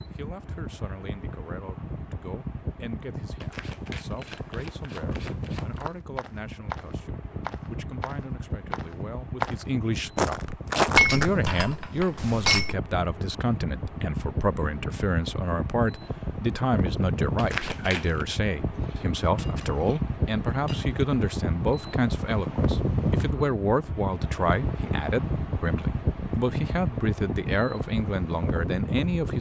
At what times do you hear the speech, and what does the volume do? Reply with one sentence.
The speech can be heard from 0.1 to 29.3 s, getting louder.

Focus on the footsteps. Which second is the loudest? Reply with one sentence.
The volume of the footsteps peaks at 11 seconds.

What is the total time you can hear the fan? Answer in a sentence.
You can hear the fan for 29 seconds altogether.